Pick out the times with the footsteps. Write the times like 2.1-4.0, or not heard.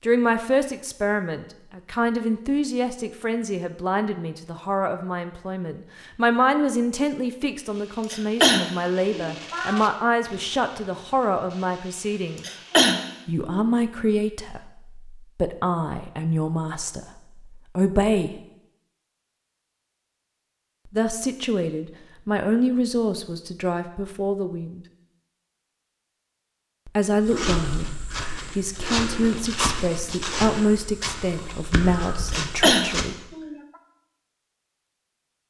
27.2-33.1.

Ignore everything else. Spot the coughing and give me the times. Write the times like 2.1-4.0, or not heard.
8.1-9.8, 12.4-13.6, 32.3-33.5.